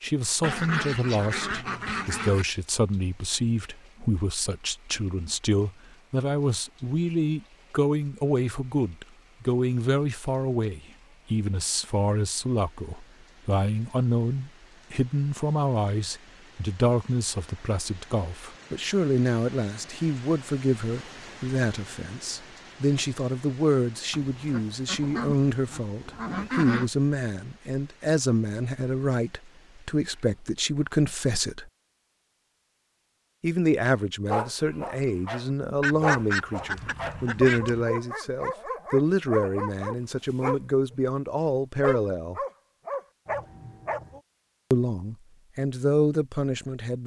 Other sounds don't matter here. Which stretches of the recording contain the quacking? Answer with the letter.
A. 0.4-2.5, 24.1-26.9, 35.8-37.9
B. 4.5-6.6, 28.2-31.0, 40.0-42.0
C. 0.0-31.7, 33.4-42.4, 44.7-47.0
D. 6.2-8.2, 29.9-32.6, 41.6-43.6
A.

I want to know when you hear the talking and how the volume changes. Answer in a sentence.
You can hear the talking from 0.0 to 31.7 s, at a steady volume; from 33.4 to 42.4 s, at a steady volume; and briefly from 44.7 to 47.0 s.